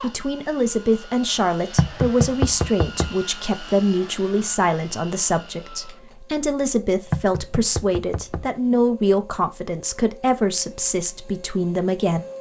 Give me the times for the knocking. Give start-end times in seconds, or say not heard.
1.8-3.1, 7.1-8.5.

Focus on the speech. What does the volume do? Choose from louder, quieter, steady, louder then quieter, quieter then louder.
steady.